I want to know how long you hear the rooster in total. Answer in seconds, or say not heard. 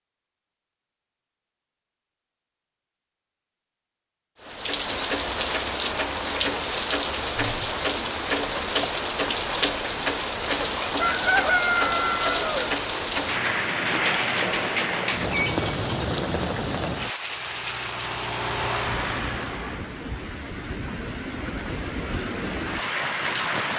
2 s.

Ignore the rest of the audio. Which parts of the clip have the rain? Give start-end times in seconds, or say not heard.
4.4-23.7.